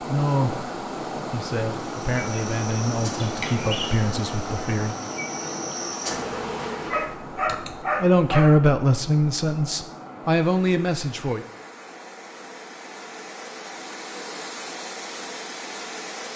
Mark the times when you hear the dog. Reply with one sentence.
The dog can be heard from 6.9 to 8.6 s.